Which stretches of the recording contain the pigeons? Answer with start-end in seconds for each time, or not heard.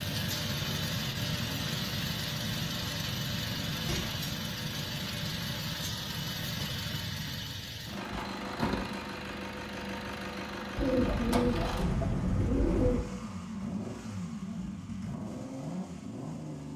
10.8-13.1.